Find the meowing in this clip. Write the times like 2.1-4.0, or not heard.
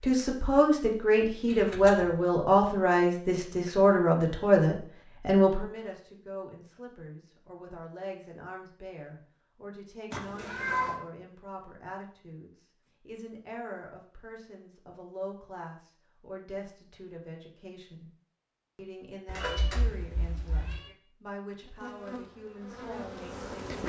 1.4-2.2, 10.1-11.0, 19.2-20.9.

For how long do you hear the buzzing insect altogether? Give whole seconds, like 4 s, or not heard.
2 s.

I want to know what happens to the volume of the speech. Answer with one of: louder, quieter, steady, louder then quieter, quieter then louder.
quieter.